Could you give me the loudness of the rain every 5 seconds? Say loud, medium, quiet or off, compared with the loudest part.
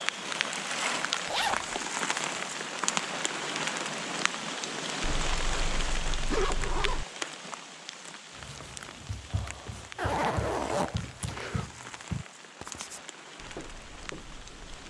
loud, medium, quiet.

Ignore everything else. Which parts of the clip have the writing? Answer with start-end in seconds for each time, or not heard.
8.3-14.8.